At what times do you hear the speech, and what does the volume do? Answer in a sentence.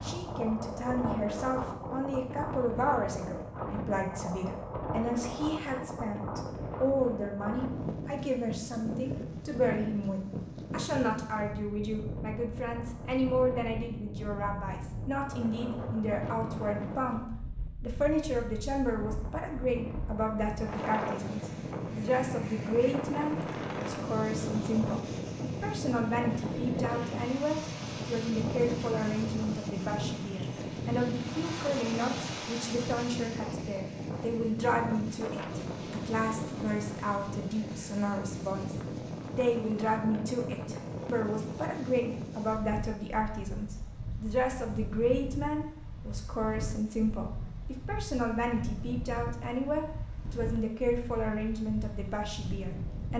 The speech can be heard from 0.0 to 53.1 s, at a steady volume.